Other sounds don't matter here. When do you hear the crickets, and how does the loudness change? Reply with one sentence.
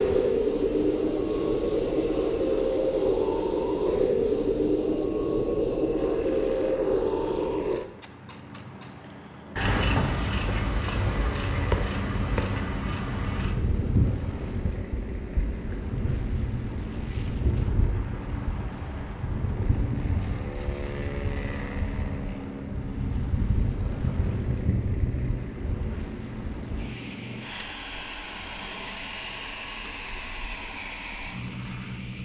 You can hear the crickets from 0.0 to 32.1 s, getting quieter.